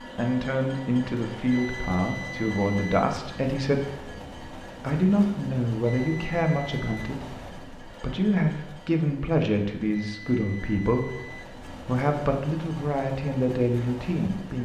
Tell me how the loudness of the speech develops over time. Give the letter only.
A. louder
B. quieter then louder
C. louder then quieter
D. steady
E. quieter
D.